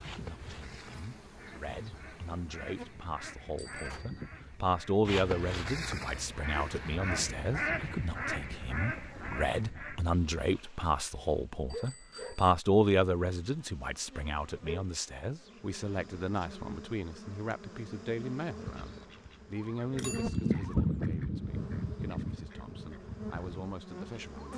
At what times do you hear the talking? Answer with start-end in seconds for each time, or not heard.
0.0-24.5.